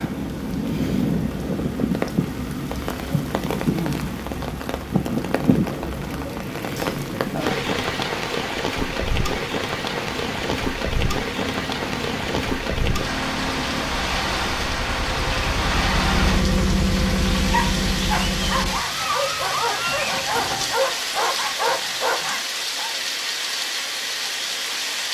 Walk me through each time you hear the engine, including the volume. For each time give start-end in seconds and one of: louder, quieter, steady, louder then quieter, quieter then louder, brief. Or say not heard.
0.0-20.8 louder.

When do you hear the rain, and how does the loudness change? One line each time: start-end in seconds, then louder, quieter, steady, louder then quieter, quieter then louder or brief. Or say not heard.
0.0-25.0 steady.